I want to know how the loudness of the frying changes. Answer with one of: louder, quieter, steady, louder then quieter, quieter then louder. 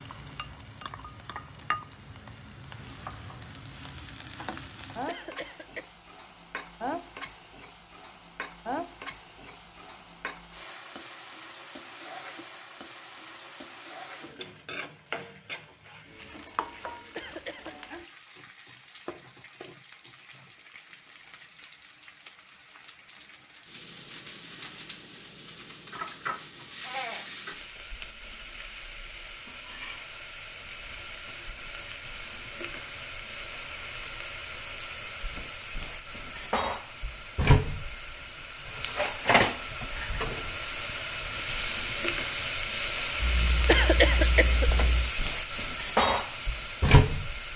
louder.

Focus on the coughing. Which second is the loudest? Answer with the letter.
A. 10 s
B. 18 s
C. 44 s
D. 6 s
C.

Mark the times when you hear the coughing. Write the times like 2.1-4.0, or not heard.
5.0-5.9, 17.1-17.8, 43.6-44.9.